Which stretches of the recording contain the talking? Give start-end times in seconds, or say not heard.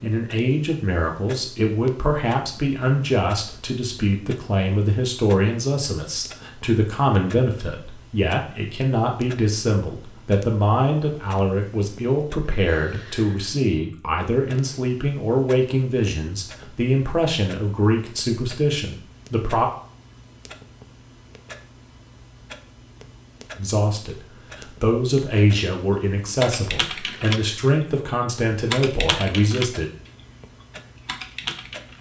0.0-19.7, 23.6-29.9.